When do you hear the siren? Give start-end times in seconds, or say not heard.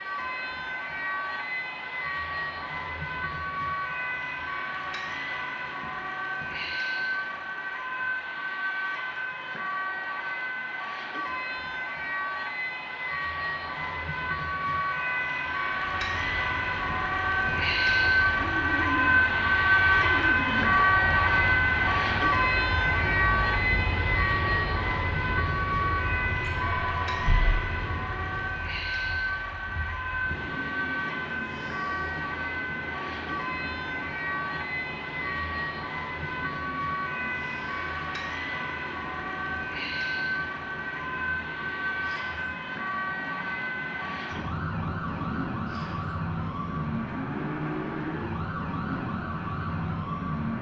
0.0-50.5.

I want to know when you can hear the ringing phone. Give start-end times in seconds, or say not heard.
26.4-27.6.